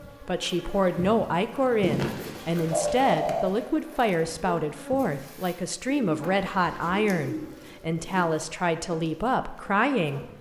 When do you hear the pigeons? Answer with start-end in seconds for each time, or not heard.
1.8-3.6, 5.8-8.3.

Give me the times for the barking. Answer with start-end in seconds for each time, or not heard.
not heard.